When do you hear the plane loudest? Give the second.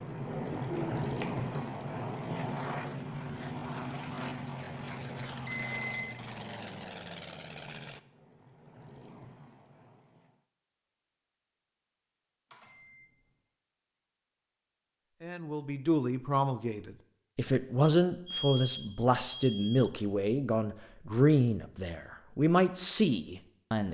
1 s.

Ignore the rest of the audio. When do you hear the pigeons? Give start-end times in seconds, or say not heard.
0.2-1.7.